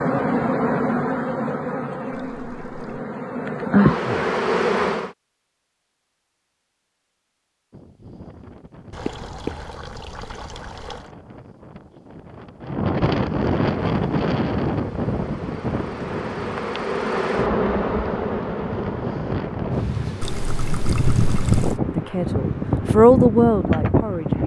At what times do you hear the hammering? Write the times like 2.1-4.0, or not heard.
not heard.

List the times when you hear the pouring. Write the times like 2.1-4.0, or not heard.
2.1-3.0, 8.9-11.1, 20.2-21.8.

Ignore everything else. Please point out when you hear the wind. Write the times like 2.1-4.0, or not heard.
7.7-24.4.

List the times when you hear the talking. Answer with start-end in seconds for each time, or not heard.
21.9-24.4.